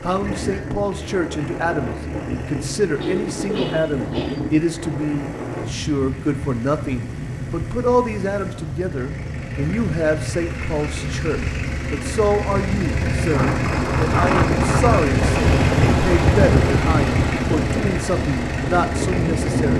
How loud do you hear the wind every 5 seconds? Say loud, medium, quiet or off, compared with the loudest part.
medium, medium, loud, loud.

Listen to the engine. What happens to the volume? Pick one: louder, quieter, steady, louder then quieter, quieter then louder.
louder.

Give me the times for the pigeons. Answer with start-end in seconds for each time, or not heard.
3.0-4.5.